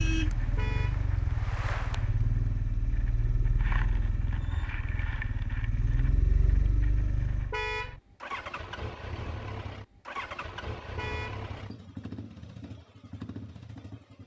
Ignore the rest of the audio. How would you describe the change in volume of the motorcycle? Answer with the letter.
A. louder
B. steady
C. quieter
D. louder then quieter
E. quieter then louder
C.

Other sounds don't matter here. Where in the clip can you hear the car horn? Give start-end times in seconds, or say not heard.
0.6-1.0, 7.5-8.0, 10.9-11.4.